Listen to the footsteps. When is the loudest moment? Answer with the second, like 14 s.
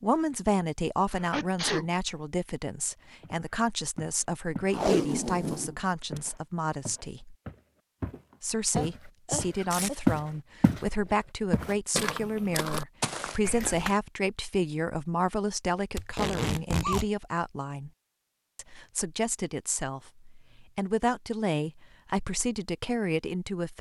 10 s.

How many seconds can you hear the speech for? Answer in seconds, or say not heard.
22 s.